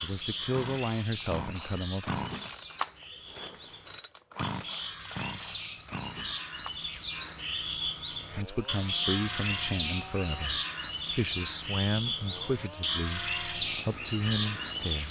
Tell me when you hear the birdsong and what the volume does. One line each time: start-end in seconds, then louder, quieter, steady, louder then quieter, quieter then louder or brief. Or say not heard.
0.0-15.0 louder.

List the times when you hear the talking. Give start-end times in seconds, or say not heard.
0.0-2.2, 8.3-15.0.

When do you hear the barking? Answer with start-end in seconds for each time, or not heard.
not heard.